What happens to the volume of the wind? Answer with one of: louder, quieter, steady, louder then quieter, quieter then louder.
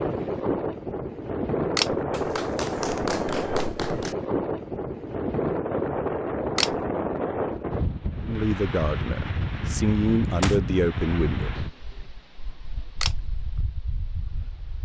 quieter.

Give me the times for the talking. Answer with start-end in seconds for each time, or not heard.
8.2-11.5.